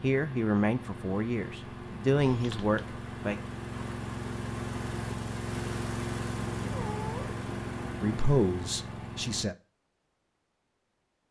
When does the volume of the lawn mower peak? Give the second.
6 s.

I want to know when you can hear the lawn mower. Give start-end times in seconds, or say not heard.
0.0-9.4.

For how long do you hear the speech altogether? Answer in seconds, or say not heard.
5 s.